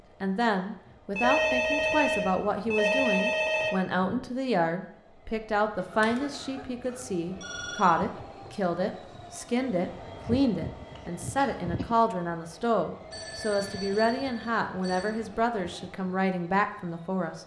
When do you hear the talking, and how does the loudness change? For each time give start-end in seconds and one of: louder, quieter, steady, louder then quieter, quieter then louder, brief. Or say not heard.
0.2-17.4 steady.